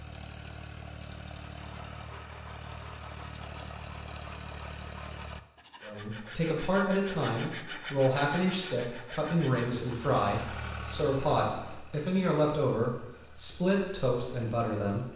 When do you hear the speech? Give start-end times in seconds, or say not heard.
5.8-15.1.